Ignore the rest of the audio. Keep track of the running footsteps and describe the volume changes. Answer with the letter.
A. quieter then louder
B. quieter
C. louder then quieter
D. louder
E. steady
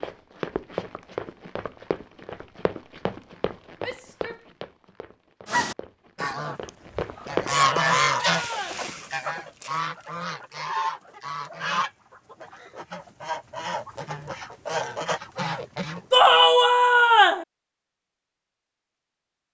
A.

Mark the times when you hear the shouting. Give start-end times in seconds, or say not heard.
3.8-4.5, 7.5-8.8, 16.1-17.4.